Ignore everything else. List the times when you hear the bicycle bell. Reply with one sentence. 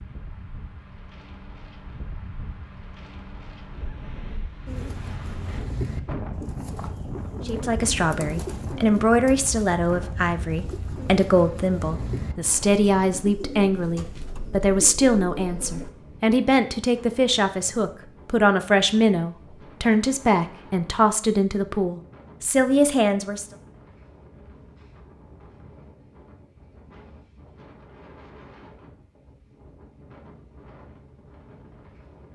You can't hear the bicycle bell here.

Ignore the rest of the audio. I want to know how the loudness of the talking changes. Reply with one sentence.
The volume of the talking stays about the same.